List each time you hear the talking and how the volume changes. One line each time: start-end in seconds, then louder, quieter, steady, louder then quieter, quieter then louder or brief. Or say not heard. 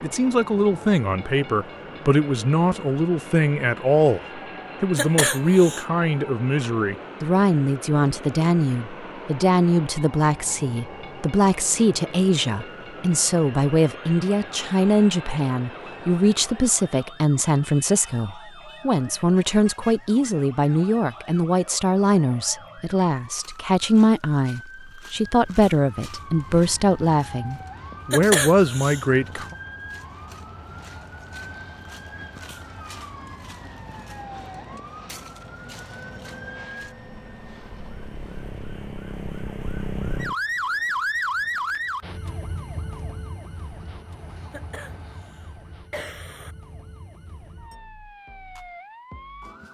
0.0-29.6 steady.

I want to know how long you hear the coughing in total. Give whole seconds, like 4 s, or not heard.
4 s.